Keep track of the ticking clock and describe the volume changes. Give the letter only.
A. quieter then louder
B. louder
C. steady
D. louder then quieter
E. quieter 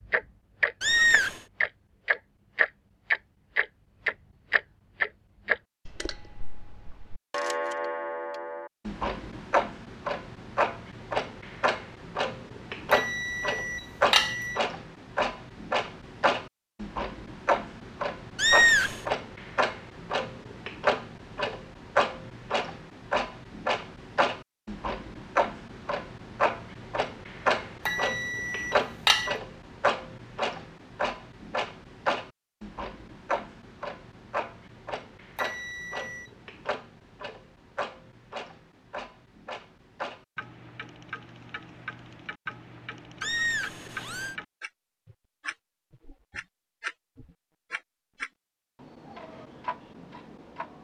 E.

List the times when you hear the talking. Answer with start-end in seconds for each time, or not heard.
not heard.